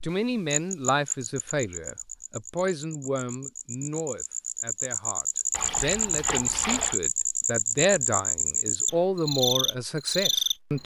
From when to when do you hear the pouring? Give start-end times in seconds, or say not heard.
5.5-7.0.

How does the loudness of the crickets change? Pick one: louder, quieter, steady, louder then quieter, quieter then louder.
louder.